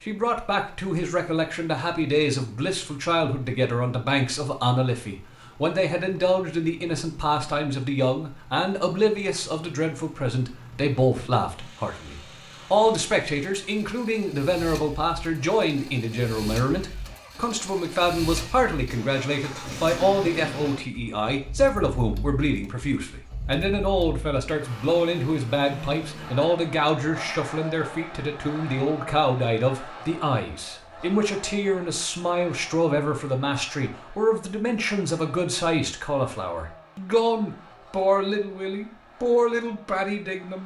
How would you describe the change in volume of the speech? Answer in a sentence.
The loudness of the speech stays about the same.